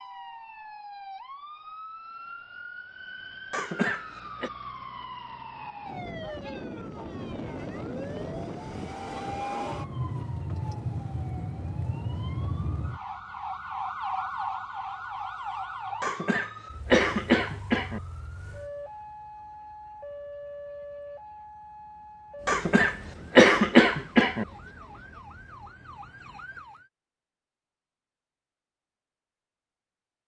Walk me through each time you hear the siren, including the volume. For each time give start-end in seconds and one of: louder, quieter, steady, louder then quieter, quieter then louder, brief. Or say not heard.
0.0-26.9 louder then quieter.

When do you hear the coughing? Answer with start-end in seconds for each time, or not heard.
3.5-4.5, 16.0-18.0, 22.4-24.4.